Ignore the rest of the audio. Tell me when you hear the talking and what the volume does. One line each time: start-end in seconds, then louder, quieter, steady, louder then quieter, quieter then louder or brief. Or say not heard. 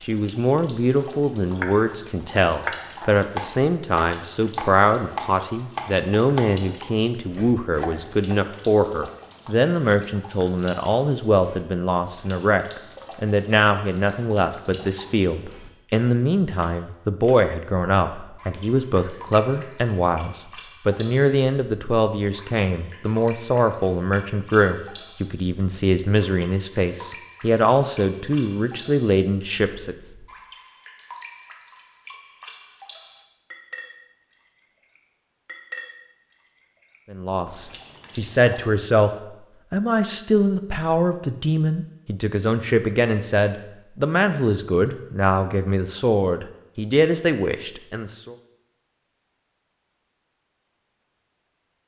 0.0-30.1 steady
37.1-39.1 brief
39.7-48.4 steady.